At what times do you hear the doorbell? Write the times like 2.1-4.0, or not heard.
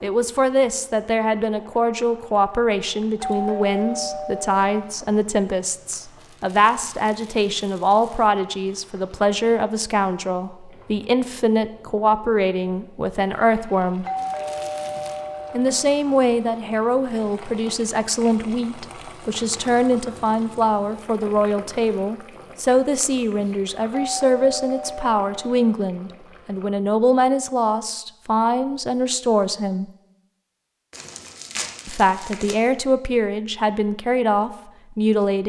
3.2-5.0, 14.0-15.8, 23.9-25.8.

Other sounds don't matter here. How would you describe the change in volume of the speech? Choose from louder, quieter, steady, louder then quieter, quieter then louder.
steady.